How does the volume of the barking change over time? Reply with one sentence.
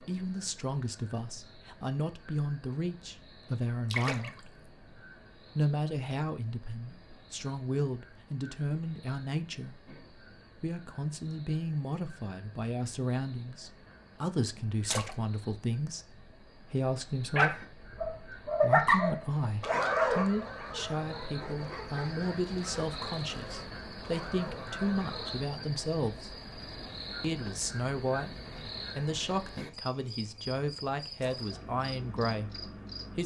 The loudness of the barking goes down.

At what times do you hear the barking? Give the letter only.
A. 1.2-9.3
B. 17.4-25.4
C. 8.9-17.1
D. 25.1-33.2
B.